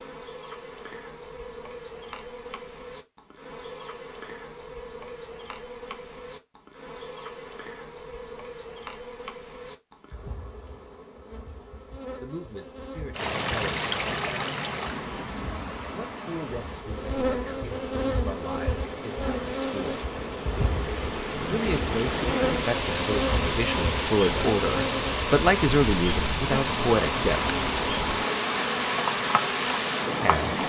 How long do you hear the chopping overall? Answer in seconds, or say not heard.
not heard.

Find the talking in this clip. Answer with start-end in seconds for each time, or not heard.
12.2-13.8, 15.9-20.0, 21.5-27.5, 30.2-30.6.